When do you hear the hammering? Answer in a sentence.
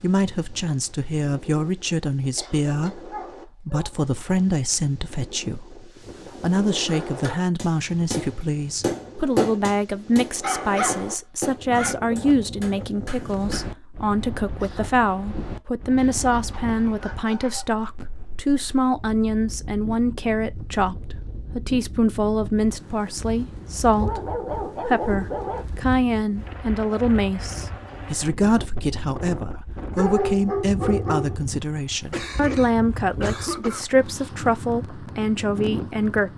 The hammering can be heard from 6.8 to 13.8 s.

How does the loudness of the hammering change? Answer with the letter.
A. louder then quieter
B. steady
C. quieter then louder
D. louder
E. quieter
A.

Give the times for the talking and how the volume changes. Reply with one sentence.
You can hear the talking from 0.0 to 36.3 s, at a steady volume.